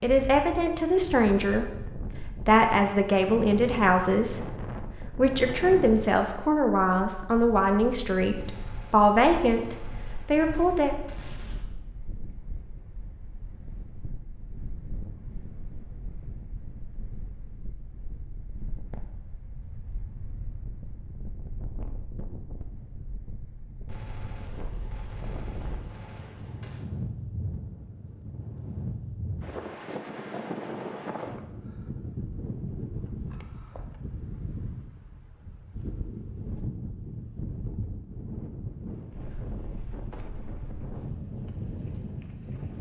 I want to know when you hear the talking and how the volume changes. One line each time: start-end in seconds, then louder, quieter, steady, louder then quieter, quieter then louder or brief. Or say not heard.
0.0-10.9 steady.